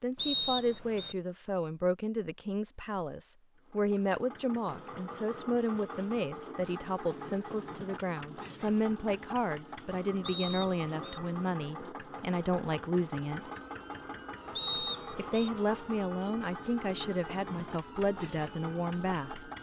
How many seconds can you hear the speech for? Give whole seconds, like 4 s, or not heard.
18 s.